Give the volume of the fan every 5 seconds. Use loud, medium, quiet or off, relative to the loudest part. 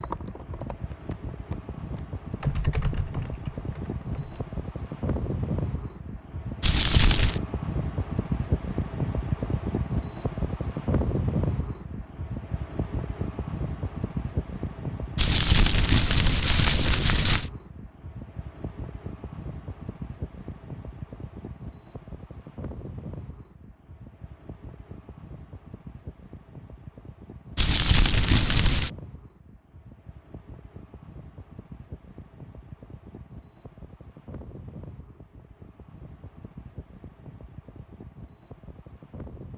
medium, loud, loud, medium, medium, quiet, quiet, quiet.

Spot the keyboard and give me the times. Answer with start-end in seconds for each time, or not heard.
0.0-4.5.